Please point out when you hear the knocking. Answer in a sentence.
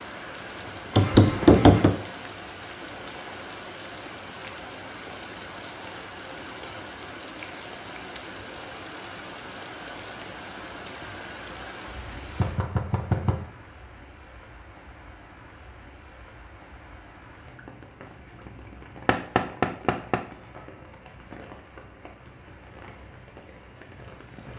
You can hear the knocking from 0.9 to 1.9 s, from 12.3 to 13.4 s and from 19.1 to 20.2 s.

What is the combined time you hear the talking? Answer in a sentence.
You can't hear the talking here.